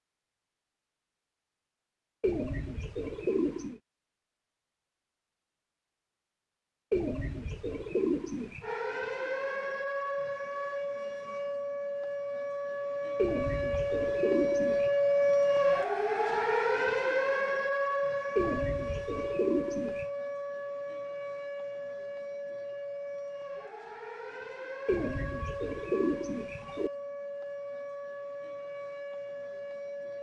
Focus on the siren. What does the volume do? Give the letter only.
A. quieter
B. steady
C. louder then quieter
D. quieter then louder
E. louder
C.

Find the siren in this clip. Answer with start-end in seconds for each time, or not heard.
8.6-30.1.